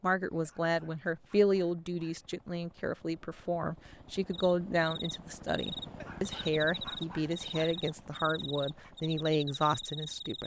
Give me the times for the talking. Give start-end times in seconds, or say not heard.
0.0-10.4.